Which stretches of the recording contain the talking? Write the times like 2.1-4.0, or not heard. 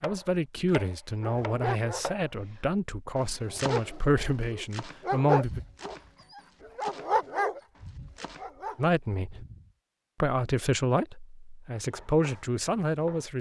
0.0-5.6, 8.8-9.4, 10.2-13.3.